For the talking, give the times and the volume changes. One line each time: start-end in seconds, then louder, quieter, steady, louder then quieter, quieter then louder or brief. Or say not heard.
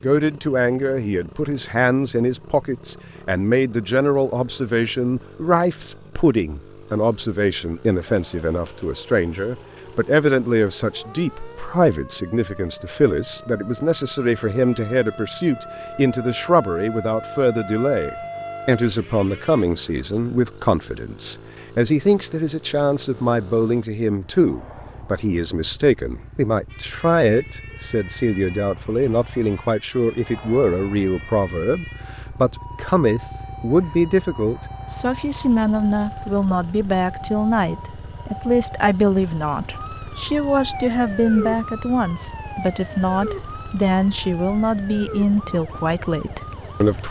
0.0-47.0 steady.